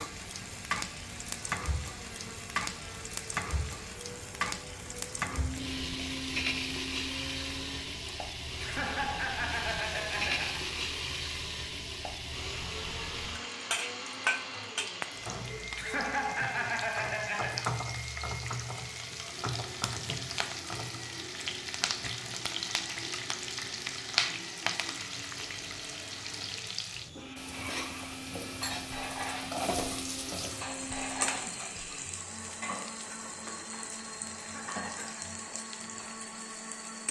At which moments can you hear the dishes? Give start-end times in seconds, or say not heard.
27.4-36.1.